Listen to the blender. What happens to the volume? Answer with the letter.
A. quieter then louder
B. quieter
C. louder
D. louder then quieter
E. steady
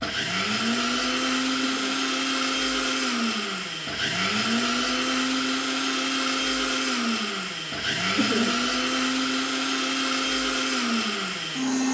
E.